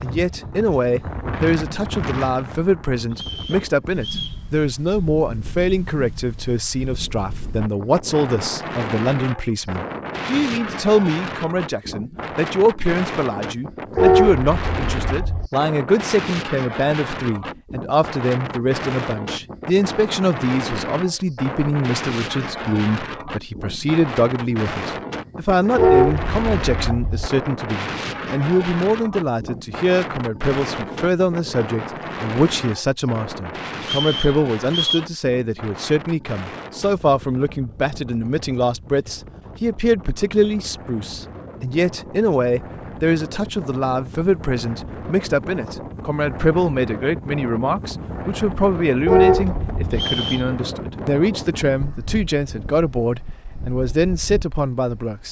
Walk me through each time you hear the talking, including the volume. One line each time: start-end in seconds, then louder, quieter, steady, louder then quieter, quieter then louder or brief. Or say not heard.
0.0-55.2 steady.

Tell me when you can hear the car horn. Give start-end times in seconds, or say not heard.
13.9-15.5, 25.8-27.3, 49.0-49.9.